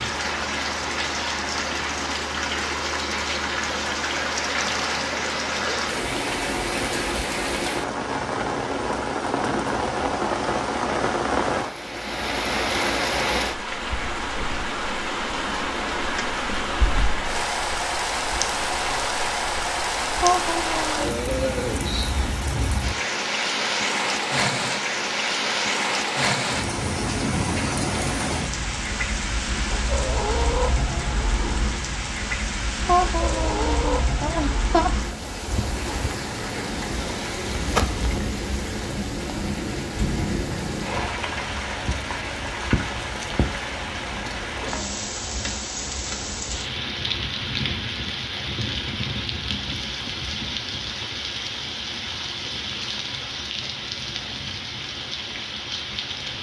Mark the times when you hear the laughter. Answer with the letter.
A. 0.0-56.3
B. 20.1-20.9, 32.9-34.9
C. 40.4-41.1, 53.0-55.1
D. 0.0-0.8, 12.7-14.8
B.